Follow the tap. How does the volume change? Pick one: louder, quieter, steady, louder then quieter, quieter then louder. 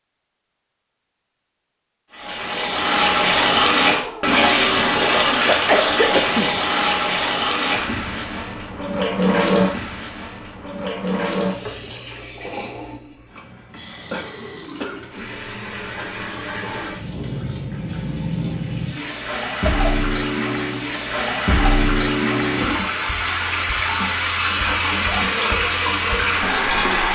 quieter then louder.